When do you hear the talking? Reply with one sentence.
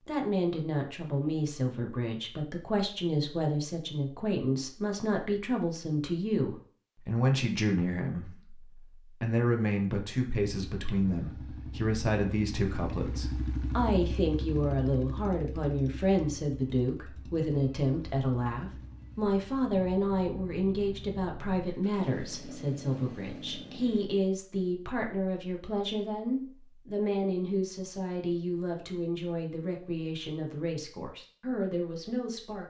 You can hear the talking from 0.1 to 32.6 s.